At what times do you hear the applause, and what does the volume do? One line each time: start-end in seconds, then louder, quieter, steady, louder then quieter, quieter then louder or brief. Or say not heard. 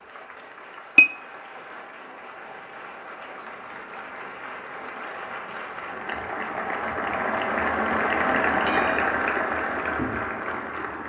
0.0-11.0 louder.